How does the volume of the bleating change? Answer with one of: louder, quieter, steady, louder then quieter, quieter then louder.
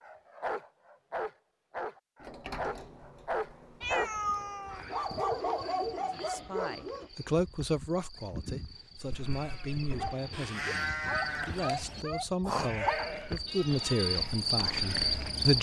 louder then quieter.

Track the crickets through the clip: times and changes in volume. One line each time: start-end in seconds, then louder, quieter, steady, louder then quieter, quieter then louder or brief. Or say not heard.
4.7-15.5 louder.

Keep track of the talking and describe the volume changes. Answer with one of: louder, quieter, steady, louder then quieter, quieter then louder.
quieter then louder.